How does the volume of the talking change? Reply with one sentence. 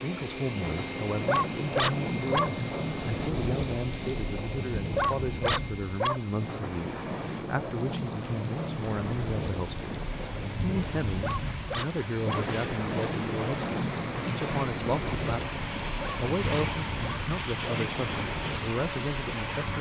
The loudness of the talking stays about the same.